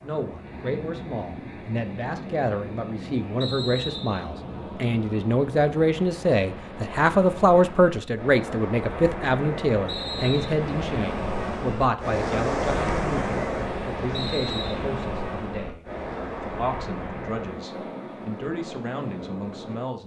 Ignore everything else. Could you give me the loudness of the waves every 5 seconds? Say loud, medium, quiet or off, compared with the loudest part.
medium, medium, loud, medium.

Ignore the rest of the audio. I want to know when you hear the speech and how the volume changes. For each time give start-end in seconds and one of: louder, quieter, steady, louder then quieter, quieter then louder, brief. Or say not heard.
0.0-20.0 louder then quieter.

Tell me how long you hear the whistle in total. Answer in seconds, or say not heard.
2 s.